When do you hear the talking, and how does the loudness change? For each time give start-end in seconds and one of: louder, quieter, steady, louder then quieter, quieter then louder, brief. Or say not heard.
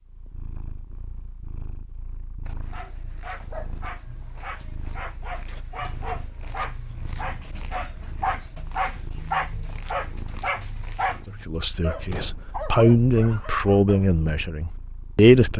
11.4-15.5 louder then quieter.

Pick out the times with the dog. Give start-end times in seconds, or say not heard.
2.5-14.1.